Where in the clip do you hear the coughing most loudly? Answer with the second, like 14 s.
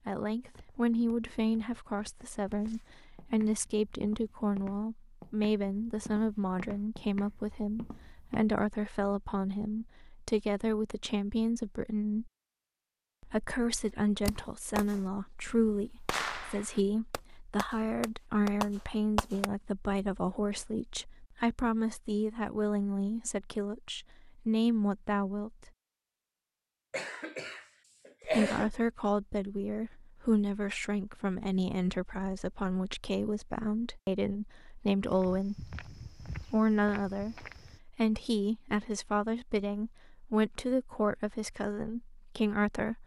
28 s.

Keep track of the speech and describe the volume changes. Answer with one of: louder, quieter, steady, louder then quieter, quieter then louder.
steady.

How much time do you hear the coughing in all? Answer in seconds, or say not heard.
2 s.